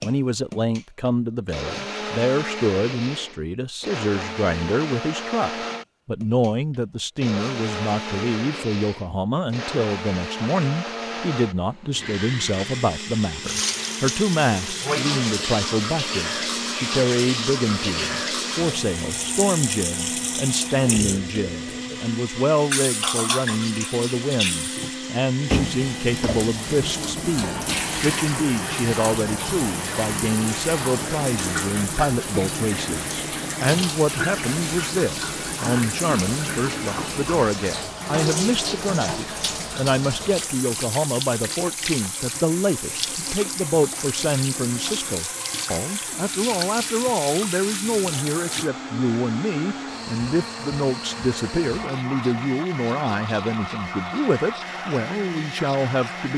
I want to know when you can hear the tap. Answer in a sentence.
You can hear the tap from 13.4 to 48.7 s.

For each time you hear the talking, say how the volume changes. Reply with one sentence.
The talking can be heard from 0.0 to 56.3 s, at a steady volume.